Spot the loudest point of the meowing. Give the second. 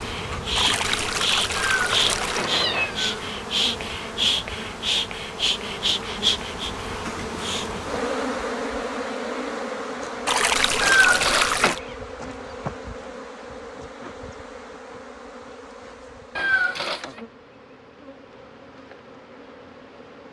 11 s.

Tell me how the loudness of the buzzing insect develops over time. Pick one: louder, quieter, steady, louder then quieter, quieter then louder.
quieter.